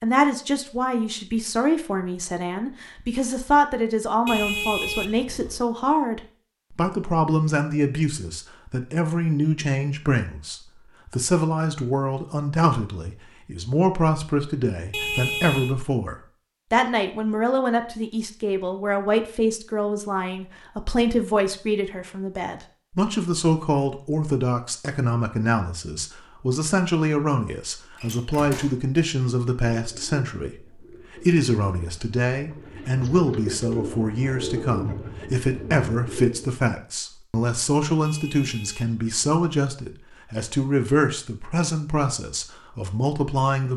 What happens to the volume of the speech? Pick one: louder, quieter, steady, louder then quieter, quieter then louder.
steady.